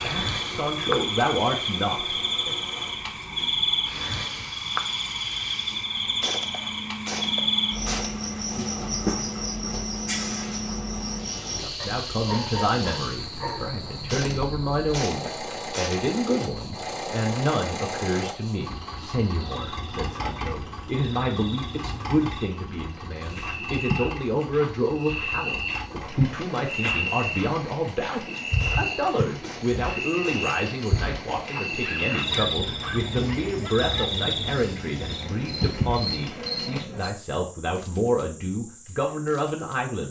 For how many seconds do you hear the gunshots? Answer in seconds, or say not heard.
6 s.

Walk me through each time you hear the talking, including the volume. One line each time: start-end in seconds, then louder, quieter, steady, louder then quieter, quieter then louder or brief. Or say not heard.
0.0-2.6 brief
11.6-40.0 steady.